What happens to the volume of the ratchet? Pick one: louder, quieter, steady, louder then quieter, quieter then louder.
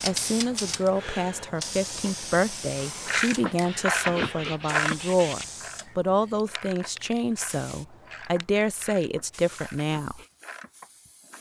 quieter.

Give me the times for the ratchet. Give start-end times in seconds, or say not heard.
2.8-11.3.